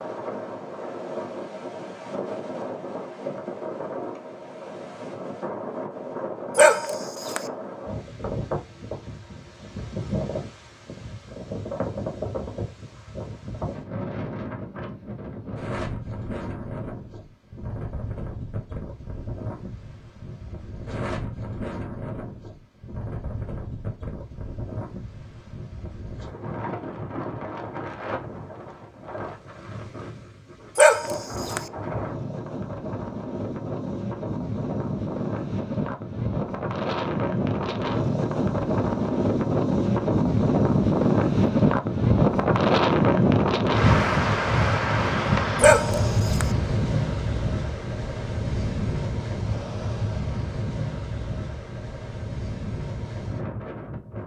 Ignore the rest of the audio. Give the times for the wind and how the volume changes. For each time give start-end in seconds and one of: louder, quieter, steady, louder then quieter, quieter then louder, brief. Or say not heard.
0.0-54.2 louder.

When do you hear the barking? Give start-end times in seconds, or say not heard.
6.5-7.4, 30.8-31.6, 45.6-46.5.